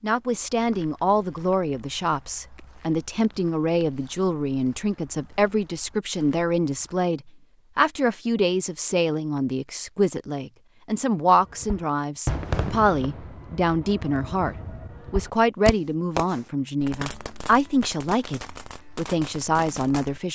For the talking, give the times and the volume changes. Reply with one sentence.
You can hear the talking from 0.0 to 20.3 s, at a steady volume.